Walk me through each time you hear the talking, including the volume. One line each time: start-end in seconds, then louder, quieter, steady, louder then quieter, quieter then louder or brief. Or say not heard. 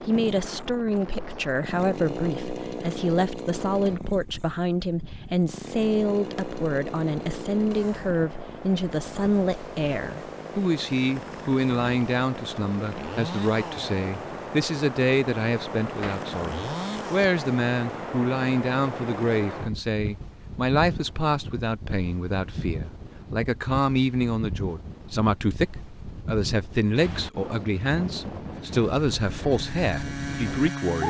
0.0-31.0 steady.